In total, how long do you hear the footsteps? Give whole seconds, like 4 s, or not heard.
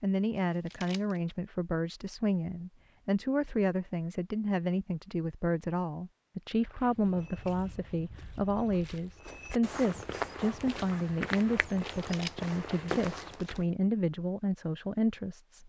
7 s.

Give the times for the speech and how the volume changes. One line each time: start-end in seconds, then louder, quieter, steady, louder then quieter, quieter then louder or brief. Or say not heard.
0.0-15.6 steady.